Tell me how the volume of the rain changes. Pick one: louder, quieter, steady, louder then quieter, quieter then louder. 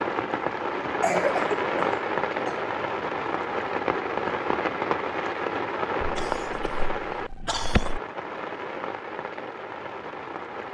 quieter.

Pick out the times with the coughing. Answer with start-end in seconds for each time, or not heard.
0.8-2.6, 6.0-8.0.